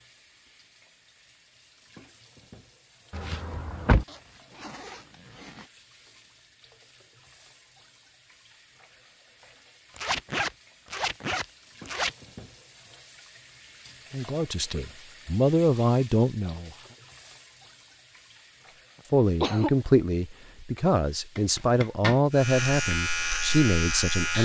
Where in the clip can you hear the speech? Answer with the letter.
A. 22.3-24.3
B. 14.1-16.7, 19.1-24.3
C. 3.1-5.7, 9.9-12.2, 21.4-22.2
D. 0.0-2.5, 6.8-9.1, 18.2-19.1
B.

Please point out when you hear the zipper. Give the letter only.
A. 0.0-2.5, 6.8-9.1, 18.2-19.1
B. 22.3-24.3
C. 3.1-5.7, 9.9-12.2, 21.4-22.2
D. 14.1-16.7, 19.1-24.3
C.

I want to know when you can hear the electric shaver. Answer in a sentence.
The electric shaver can be heard from 22.3 to 24.3 s.